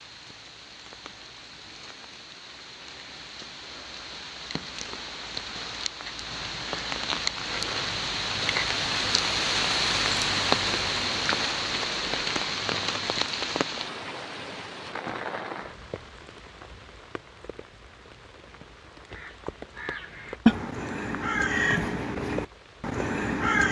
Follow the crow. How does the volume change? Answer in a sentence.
The volume of the crow goes up, then down.